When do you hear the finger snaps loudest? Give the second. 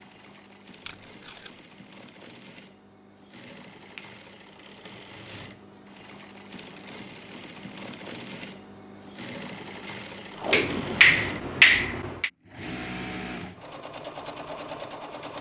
12 s.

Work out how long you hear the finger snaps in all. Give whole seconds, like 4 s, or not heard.
2 s.